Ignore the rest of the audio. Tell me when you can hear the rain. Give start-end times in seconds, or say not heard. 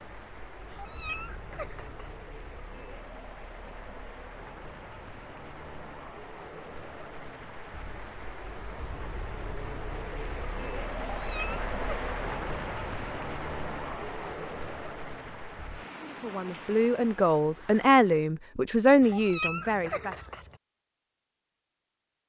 0.0-18.2.